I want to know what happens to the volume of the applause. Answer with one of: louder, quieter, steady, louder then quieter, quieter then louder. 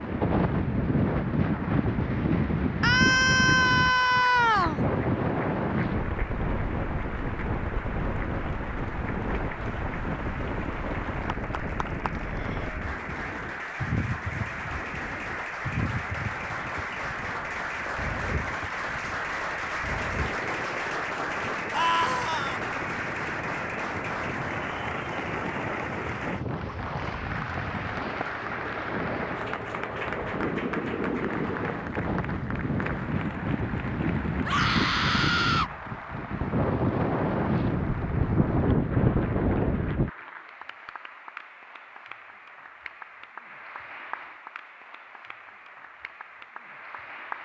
louder then quieter.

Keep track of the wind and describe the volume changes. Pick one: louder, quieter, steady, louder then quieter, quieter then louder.
quieter then louder.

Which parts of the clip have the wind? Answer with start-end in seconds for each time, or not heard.
0.0-40.1.